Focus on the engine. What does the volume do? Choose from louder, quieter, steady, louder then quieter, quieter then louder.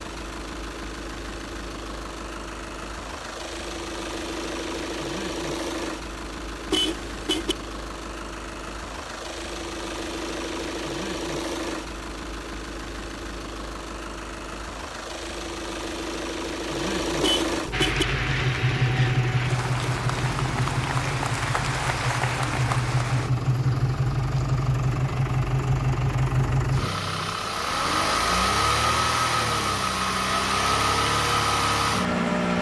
louder.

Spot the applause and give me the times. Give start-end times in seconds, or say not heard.
17.7-23.3.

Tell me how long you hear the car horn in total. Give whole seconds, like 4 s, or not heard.
2 s.